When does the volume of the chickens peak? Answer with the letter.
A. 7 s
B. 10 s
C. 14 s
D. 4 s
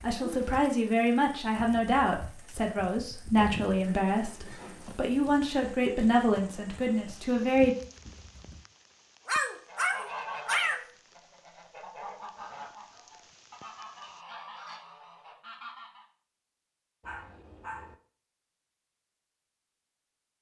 B.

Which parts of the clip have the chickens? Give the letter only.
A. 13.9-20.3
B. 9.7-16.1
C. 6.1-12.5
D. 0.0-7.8
B.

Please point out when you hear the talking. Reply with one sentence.
The talking can be heard from 0.0 to 7.8 s.